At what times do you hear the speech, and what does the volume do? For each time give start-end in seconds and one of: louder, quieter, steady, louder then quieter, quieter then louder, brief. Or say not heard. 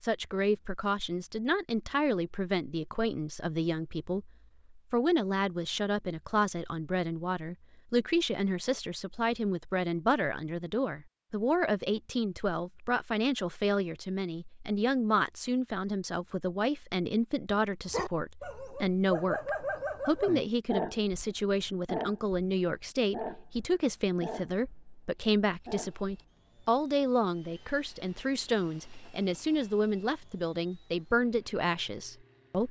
0.0-32.6 steady.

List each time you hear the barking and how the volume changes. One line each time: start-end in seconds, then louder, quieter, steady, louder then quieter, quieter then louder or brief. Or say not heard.
17.9-26.4 quieter.